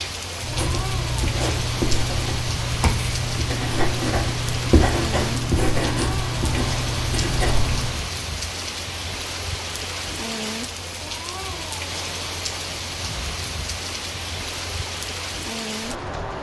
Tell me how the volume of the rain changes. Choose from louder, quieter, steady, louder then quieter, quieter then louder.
steady.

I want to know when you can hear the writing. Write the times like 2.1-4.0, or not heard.
0.4-8.0.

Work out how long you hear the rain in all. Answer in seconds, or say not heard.
16 s.